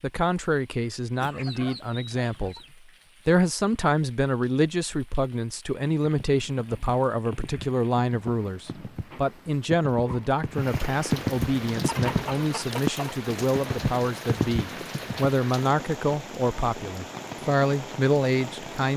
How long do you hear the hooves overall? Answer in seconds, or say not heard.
9 s.